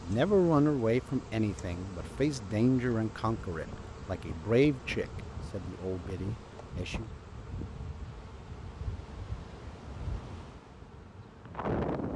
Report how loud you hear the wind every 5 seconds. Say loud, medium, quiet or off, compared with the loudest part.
medium, medium, loud.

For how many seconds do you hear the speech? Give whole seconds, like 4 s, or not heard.
7 s.